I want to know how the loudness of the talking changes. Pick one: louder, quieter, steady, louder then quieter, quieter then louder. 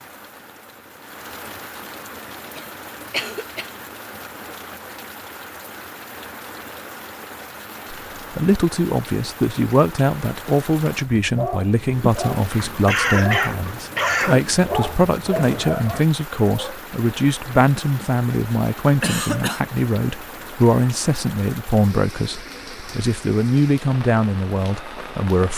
steady.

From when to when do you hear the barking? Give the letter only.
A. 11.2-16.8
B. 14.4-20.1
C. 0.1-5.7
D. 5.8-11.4
A.